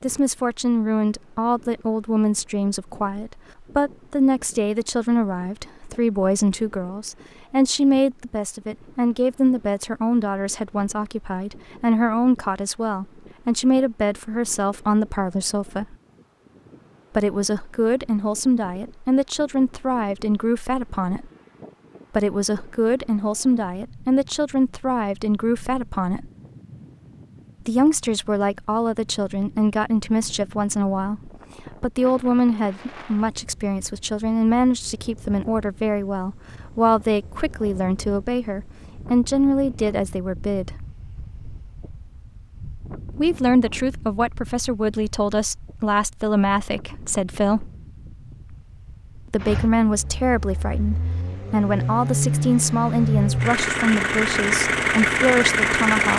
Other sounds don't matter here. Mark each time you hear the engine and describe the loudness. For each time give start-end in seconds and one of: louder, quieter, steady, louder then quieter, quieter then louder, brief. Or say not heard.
49.4-56.1 louder.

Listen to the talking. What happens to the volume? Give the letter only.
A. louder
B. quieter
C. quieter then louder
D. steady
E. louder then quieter
D.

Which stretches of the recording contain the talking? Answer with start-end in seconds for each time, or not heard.
0.0-15.9, 17.1-21.3, 22.1-26.3, 27.6-40.8, 43.1-47.7, 49.3-56.1.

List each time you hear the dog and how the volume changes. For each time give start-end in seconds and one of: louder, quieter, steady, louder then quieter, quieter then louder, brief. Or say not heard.
not heard.